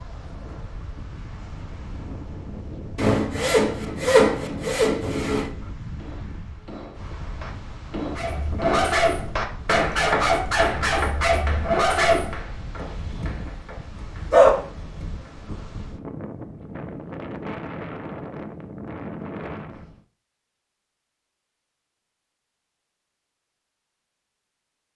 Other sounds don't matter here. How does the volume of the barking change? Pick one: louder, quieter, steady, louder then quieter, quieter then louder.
quieter then louder.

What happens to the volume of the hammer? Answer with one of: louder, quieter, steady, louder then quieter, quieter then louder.
louder then quieter.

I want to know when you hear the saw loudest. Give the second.
4 s.